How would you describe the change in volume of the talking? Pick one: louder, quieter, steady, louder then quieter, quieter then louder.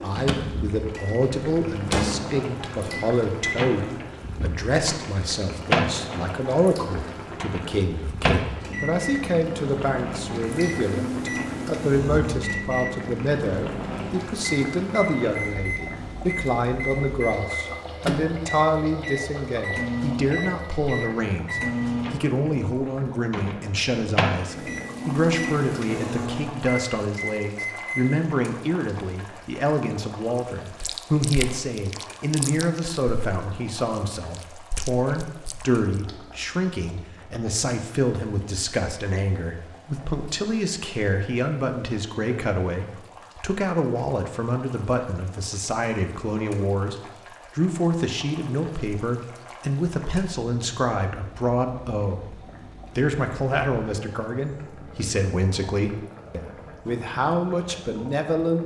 steady.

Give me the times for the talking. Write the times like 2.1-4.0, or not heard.
0.0-58.6.